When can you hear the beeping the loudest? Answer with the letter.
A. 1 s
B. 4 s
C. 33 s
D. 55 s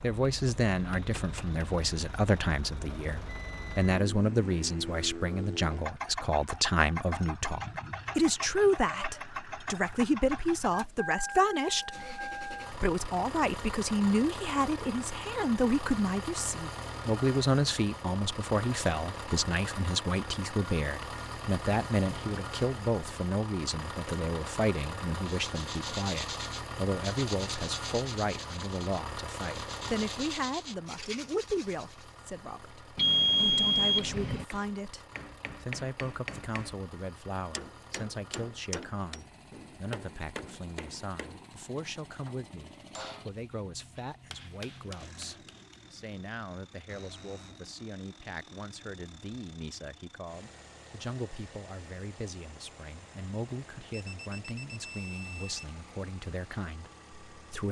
C.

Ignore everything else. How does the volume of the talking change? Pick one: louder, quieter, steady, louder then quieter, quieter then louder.
quieter.